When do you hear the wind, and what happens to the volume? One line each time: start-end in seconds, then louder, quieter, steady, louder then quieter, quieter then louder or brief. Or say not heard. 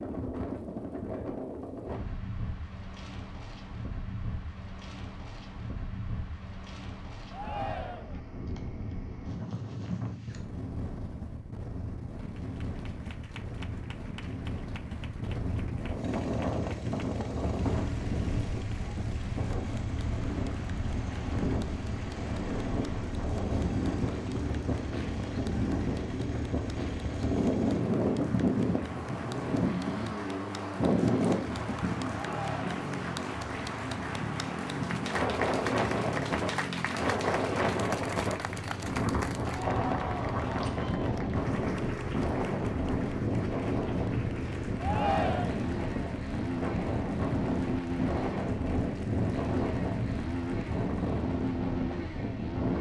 0.0-52.7 louder.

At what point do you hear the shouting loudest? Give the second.
45 s.